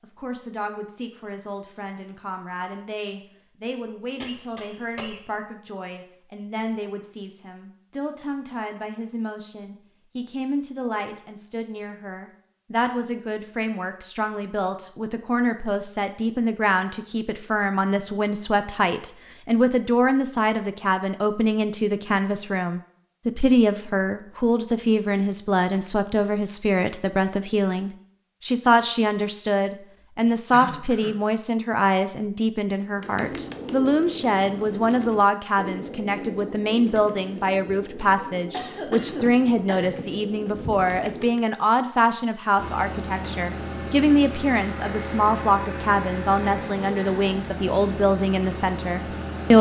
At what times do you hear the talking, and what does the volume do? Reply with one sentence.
You can hear the talking from 0.0 to 49.5 s, getting louder.